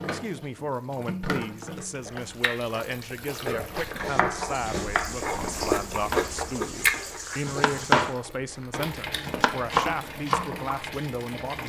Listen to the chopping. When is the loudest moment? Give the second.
8 s.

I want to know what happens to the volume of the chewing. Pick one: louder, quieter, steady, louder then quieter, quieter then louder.
louder then quieter.